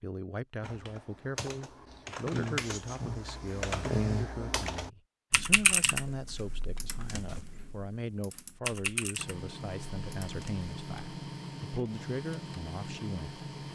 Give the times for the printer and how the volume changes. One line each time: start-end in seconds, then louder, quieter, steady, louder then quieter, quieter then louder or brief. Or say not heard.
9.2-13.7 steady.